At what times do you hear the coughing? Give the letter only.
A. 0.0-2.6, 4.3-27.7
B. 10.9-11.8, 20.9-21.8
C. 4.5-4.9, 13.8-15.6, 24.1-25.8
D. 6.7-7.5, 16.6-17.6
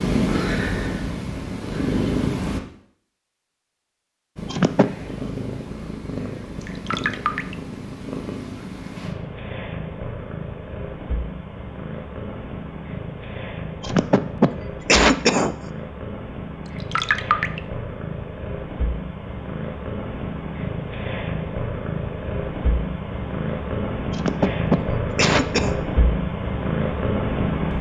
C.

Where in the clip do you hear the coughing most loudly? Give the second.
15 s.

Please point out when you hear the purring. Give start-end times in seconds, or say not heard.
0.0-2.6, 4.3-27.7.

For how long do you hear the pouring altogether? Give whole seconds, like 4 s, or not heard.
2 s.